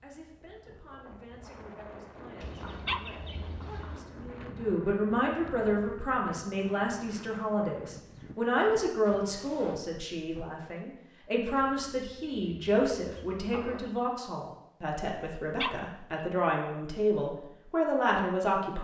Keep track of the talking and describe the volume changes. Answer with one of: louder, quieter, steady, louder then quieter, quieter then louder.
louder.